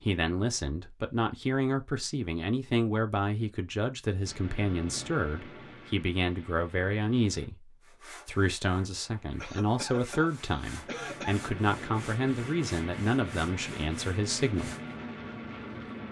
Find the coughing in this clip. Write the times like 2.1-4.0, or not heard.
9.3-11.4.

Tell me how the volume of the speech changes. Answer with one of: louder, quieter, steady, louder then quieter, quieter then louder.
steady.